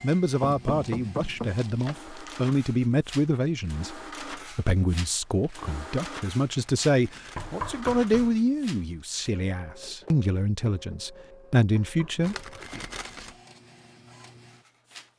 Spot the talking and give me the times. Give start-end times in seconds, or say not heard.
0.0-12.8.